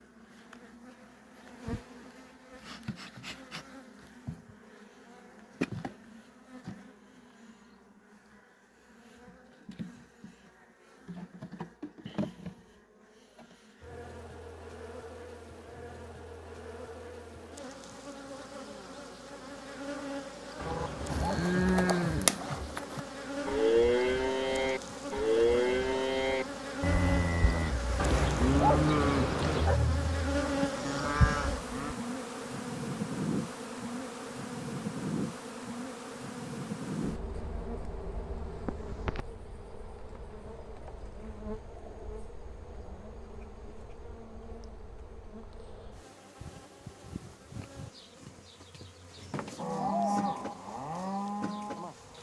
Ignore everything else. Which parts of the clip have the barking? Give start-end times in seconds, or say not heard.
20.6-21.9, 27.9-29.8.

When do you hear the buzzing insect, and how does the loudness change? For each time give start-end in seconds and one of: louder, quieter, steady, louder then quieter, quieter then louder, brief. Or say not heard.
0.0-52.1 louder then quieter.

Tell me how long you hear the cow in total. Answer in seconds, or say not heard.
14 s.